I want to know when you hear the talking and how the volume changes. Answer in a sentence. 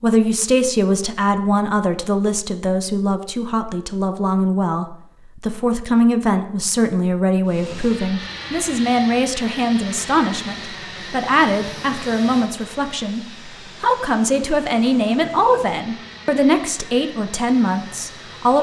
The talking can be heard from 0.0 to 18.5 s, at a steady volume.